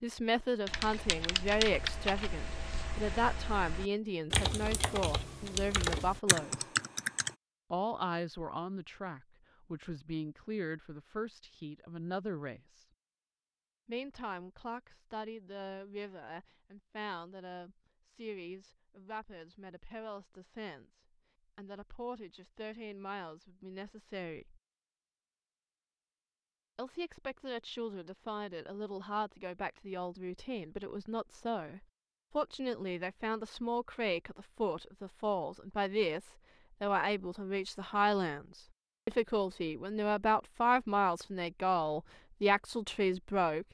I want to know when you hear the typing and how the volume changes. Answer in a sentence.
The typing can be heard from 0.7 to 7.3 s, getting quieter then louder.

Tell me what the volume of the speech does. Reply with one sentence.
The volume of the speech goes down, then up.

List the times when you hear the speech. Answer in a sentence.
The speech can be heard from 0.0 to 6.7 s, from 7.7 to 12.8 s, from 13.8 to 24.6 s and from 26.8 to 43.6 s.